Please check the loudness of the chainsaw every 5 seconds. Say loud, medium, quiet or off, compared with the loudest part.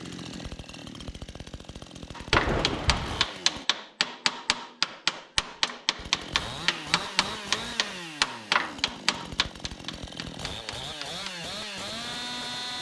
medium, loud, loud.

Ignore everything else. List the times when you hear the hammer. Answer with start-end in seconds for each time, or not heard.
2.1-11.4.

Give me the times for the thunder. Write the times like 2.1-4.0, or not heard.
2.3-3.2.